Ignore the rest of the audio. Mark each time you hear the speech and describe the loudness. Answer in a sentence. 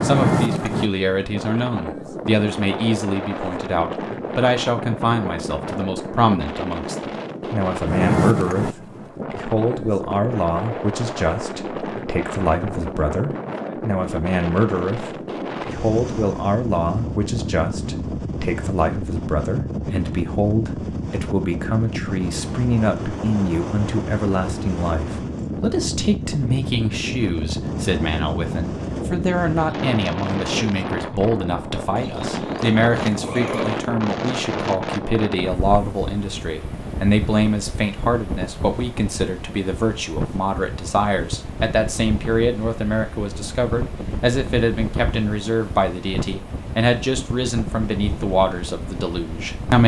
The speech can be heard from 0.0 to 49.8 s, at a steady volume.